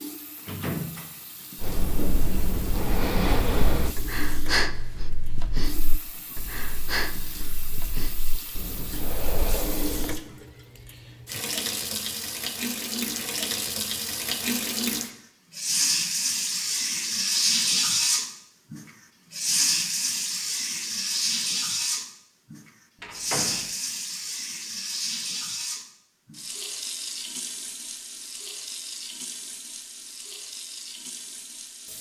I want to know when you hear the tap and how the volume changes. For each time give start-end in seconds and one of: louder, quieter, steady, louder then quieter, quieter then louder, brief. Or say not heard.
0.0-31.9 louder then quieter.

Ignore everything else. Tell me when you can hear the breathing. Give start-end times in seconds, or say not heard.
1.6-10.2.